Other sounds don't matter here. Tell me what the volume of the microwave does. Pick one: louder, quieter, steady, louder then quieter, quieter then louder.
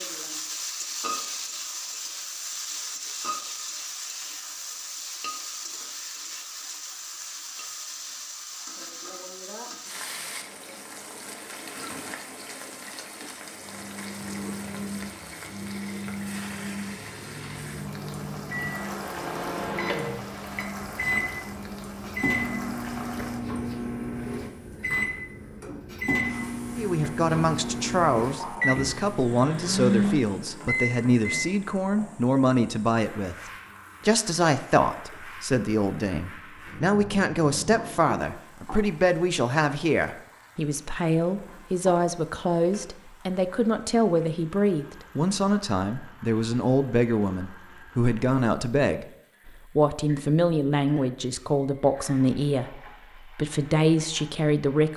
louder.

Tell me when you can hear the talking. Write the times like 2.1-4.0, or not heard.
26.8-33.4, 34.0-54.9.